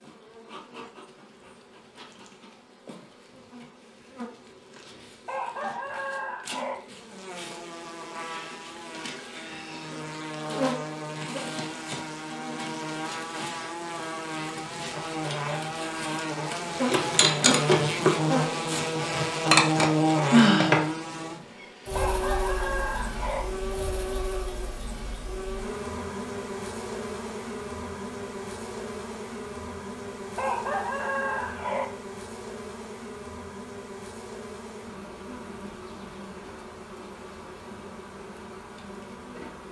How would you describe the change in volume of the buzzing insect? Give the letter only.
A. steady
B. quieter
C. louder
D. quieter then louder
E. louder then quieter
E.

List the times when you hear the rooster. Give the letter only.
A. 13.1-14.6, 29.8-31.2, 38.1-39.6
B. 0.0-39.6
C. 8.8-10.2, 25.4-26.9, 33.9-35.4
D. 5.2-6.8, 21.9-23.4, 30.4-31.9
D.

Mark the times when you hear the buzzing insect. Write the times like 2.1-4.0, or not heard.
0.0-39.6.